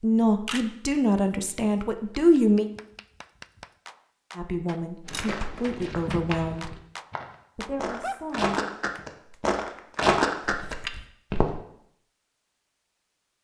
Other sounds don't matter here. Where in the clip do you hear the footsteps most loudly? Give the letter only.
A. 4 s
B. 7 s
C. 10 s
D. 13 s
C.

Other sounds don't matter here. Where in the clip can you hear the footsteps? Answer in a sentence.
You can hear the footsteps from 5.0 to 11.6 s.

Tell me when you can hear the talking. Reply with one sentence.
You can hear the talking from 0.0 to 2.7 s, from 4.3 to 6.8 s and from 7.5 to 8.7 s.